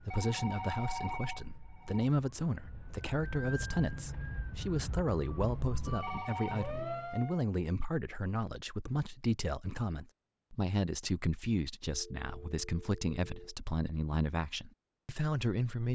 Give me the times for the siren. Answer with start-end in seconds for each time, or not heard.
0.0-7.5.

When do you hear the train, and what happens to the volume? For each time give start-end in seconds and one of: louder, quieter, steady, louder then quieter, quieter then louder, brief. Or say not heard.
not heard.